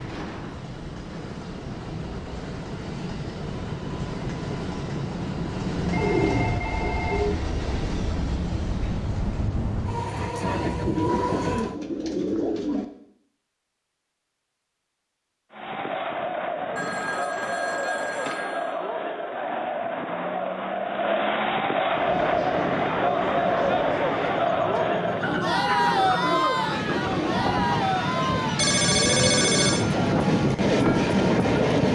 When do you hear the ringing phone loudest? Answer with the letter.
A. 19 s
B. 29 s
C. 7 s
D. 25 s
B.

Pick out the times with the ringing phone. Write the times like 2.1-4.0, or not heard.
5.8-7.3, 16.8-18.8, 28.6-29.9.